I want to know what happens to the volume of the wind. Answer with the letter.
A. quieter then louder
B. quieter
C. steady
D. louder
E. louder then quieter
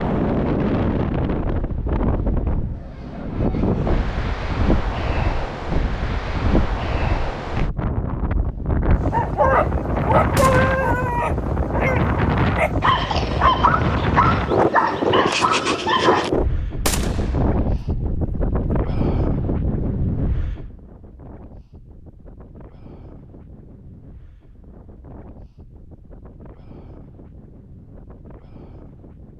B.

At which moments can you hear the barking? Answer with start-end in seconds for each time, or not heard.
9.1-16.3.